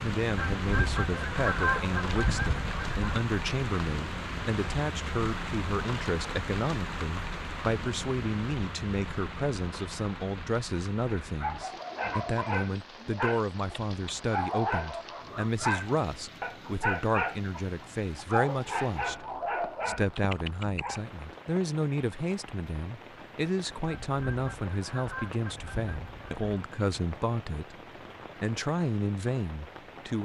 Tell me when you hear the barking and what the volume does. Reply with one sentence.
You can hear the barking from 11.2 to 21.0 s, at a steady volume.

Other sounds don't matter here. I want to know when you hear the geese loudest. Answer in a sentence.
The volume of the geese peaks at 2 seconds.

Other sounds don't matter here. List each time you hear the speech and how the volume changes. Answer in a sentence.
You can hear the speech from 0.0 to 27.8 s, at a steady volume; and briefly from 28.4 to 30.2 s.